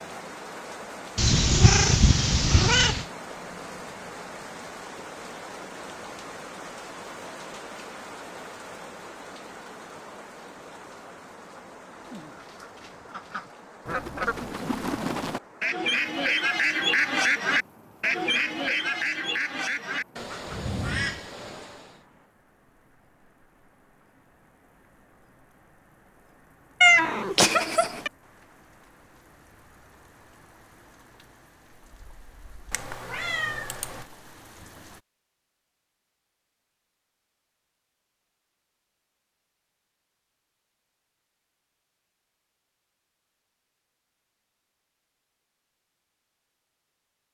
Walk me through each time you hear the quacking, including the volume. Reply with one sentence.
The quacking can be heard from 11.9 to 22.0 s, getting louder then quieter.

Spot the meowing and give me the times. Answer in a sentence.
The meowing can be heard from 1.1 to 3.0 s, from 26.8 to 28.1 s and from 32.7 to 34.0 s.